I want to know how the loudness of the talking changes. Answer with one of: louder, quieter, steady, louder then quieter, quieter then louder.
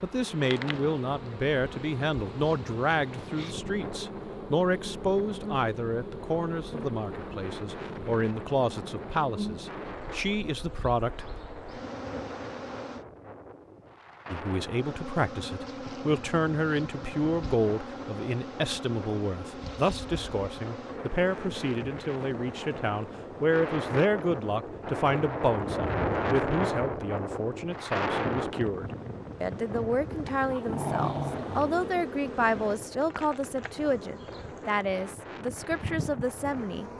steady.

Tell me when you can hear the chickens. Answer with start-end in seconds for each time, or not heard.
not heard.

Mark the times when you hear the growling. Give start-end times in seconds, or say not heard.
30.3-32.0.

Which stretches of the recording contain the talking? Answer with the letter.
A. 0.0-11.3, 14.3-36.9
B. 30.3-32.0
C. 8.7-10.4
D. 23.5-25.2
A.